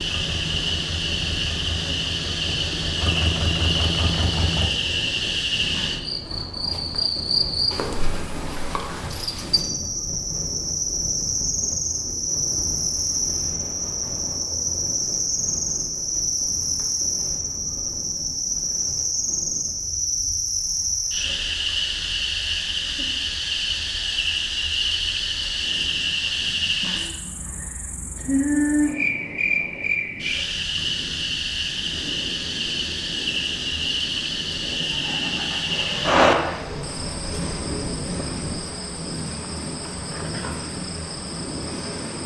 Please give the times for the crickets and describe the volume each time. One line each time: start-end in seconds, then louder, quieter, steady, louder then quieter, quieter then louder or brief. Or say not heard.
0.0-42.2 steady.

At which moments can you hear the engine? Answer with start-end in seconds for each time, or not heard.
0.0-4.7, 34.9-42.2.